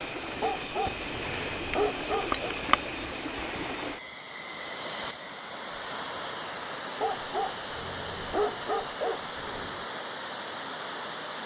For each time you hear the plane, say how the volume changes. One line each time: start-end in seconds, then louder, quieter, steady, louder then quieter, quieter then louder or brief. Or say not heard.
not heard.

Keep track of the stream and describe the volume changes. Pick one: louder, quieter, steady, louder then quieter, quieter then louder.
steady.